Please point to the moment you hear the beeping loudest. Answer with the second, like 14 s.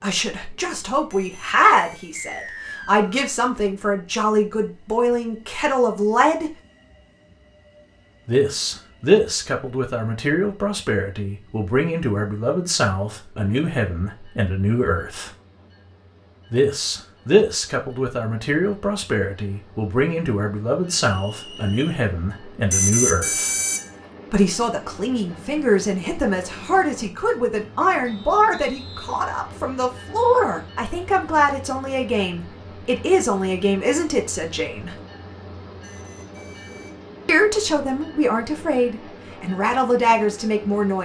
23 s.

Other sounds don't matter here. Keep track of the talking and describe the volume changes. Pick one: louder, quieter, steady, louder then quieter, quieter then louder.
steady.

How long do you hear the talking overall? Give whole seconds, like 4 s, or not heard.
35 s.